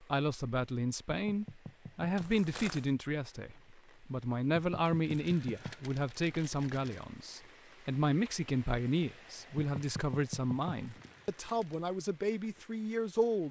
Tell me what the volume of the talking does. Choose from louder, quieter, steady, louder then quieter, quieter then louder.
steady.